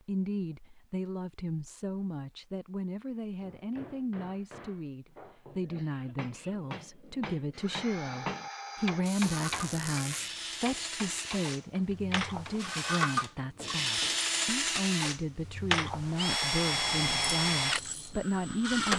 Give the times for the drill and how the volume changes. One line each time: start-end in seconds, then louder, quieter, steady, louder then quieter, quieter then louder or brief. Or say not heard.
7.5-18.9 louder.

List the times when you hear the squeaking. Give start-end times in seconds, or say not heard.
9.1-10.3.